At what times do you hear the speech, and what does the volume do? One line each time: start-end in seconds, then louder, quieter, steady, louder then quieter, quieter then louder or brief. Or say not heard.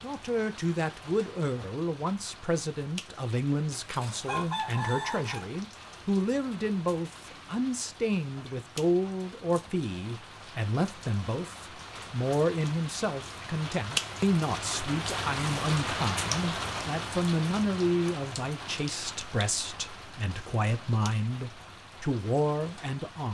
0.0-23.2 steady.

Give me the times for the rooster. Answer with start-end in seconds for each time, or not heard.
3.8-5.4.